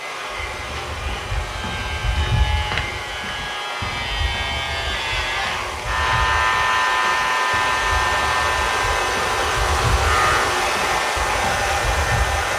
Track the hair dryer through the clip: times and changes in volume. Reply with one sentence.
The hair dryer can be heard from 0.0 to 12.5 s, getting louder.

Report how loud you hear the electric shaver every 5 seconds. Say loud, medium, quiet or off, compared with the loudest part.
medium, loud, loud.